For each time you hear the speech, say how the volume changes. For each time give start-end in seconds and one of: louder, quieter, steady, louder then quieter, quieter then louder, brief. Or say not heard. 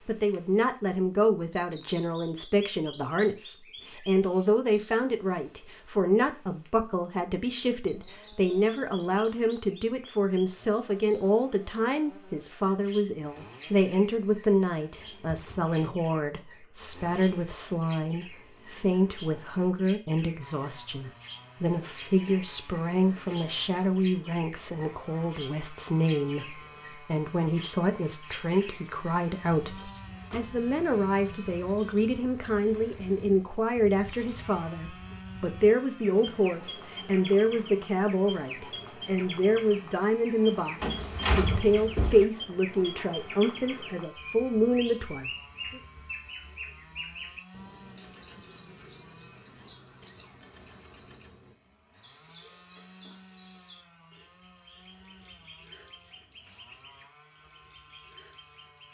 0.1-45.8 steady.